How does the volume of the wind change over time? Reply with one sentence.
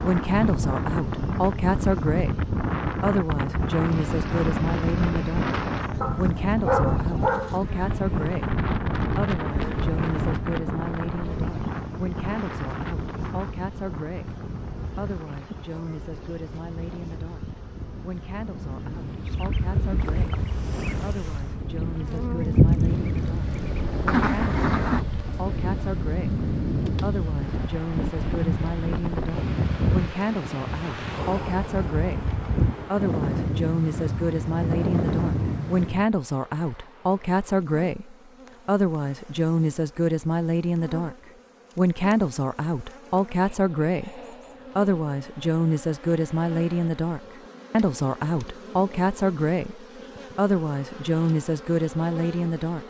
The volume of the wind goes down, then up.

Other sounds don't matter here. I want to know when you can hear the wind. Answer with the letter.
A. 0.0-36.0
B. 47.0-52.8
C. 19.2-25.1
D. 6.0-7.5
A.